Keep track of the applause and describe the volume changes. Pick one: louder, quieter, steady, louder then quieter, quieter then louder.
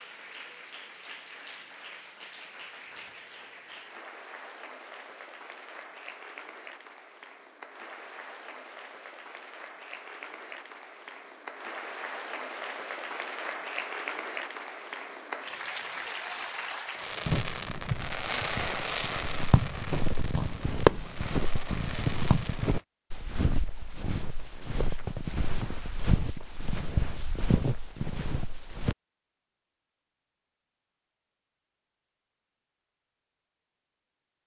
louder.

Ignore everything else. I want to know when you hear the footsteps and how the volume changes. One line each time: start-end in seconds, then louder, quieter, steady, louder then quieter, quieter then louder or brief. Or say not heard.
17.2-28.9 louder.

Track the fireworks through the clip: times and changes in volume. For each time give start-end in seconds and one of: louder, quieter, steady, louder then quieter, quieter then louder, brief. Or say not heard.
16.9-22.8 louder then quieter.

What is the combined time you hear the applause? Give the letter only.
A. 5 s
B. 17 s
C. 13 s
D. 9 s
B.